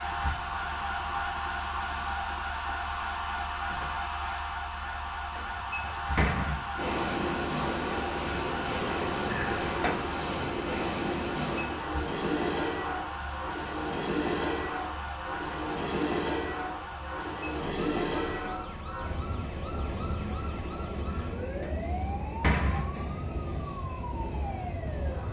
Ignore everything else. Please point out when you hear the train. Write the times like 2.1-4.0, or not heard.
6.8-25.2.